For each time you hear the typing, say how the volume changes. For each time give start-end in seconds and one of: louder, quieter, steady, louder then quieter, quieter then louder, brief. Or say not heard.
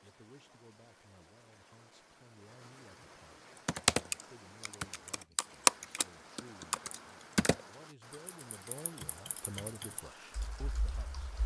3.6-11.4 louder then quieter.